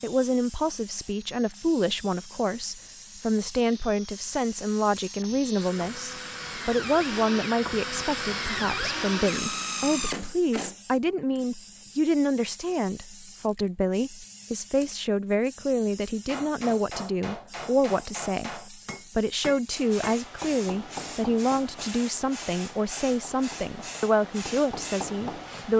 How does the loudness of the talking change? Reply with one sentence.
The volume of the talking stays about the same.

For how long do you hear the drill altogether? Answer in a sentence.
You can hear the drill for 11 seconds altogether.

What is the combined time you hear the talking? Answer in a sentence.
You can hear the talking for 26 seconds altogether.